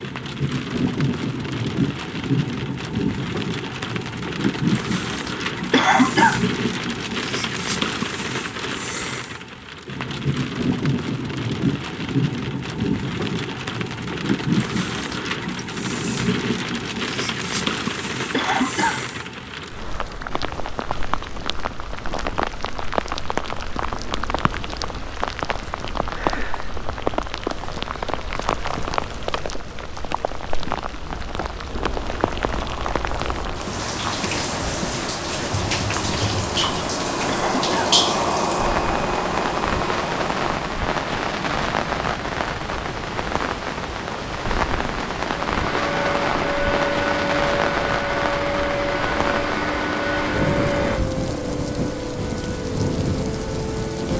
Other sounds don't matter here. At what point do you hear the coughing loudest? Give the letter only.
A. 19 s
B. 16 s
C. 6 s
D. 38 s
C.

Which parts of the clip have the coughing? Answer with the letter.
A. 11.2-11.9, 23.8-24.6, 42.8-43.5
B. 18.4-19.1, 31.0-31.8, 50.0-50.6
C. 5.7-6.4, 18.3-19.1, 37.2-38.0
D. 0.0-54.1
C.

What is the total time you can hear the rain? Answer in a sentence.
The rain can be heard for 54 seconds in total.